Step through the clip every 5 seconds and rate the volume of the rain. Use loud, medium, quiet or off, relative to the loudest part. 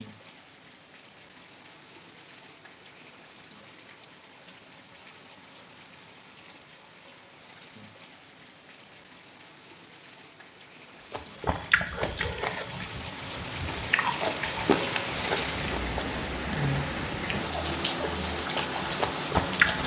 quiet, quiet, medium, loud.